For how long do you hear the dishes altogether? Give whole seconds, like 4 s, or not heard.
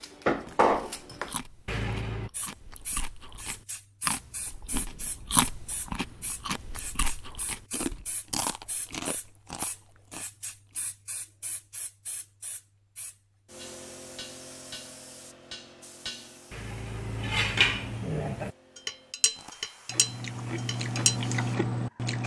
10 s.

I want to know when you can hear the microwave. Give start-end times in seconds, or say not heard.
not heard.